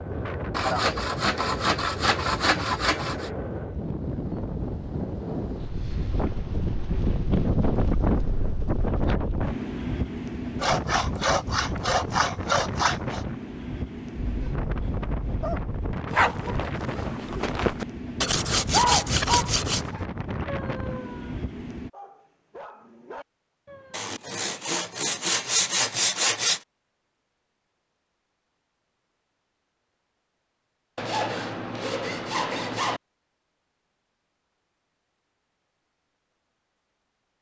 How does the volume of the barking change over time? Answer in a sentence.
The loudness of the barking goes up, then down.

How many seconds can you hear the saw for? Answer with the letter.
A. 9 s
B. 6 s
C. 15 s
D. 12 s
D.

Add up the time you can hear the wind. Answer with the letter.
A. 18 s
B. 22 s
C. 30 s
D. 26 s
B.